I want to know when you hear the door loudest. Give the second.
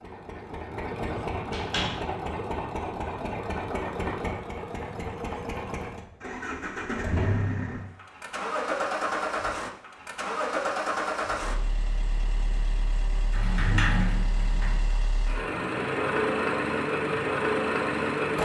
14 s.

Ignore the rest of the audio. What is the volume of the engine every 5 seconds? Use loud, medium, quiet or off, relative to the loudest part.
medium, medium, medium, loud.